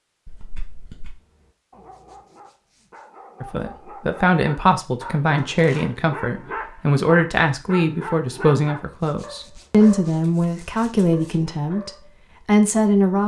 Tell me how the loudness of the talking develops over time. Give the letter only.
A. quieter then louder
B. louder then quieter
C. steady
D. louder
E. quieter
C.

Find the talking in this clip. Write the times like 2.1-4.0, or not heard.
3.4-13.2.